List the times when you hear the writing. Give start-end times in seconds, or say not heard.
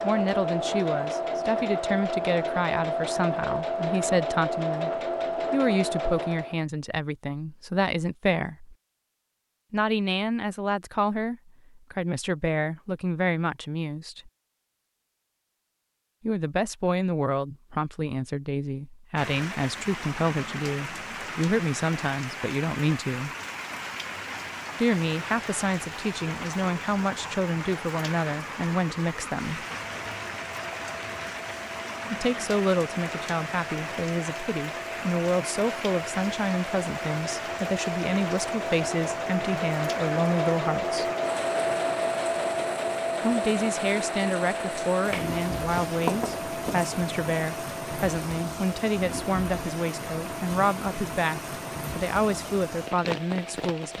45.0-47.0.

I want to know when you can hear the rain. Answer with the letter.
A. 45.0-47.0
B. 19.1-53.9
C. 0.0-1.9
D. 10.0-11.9
B.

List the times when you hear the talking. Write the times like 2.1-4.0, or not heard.
0.0-8.8, 9.7-14.3, 16.2-23.3, 24.8-29.6, 32.1-41.0, 43.2-53.9.